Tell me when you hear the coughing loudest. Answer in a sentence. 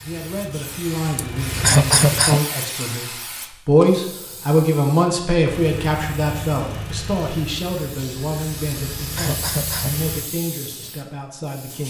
The volume of the coughing peaks at 2 seconds.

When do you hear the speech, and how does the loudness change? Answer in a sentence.
The speech can be heard from 0.0 to 11.8 s, getting louder then quieter.